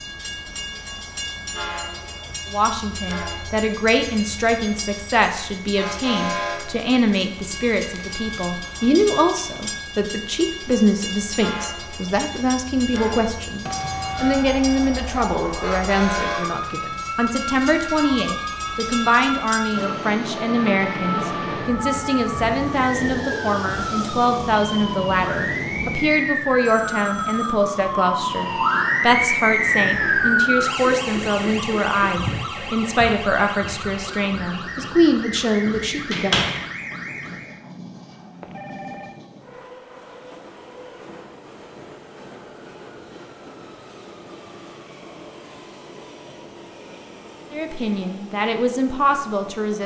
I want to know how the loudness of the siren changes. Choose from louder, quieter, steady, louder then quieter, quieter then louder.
louder then quieter.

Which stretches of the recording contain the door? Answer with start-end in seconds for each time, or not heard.
35.8-36.7.